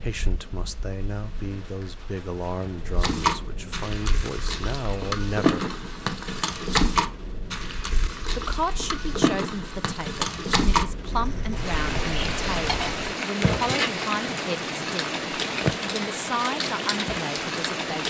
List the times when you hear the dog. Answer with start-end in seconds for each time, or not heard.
not heard.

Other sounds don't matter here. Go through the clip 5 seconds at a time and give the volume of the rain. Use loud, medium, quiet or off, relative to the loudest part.
quiet, quiet, loud, loud.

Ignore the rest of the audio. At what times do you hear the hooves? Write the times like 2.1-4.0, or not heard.
3.0-13.8.